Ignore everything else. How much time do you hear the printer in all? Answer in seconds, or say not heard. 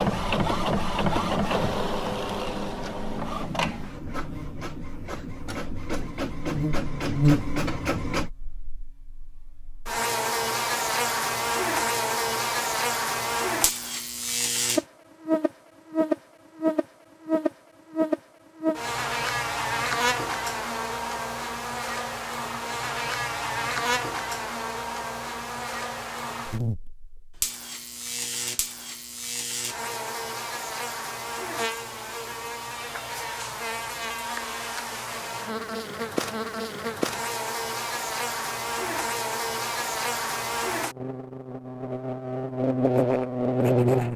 8 s.